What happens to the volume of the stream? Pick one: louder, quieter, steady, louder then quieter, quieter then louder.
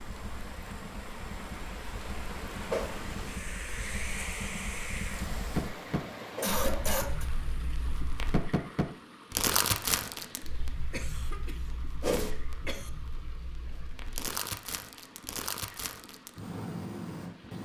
quieter.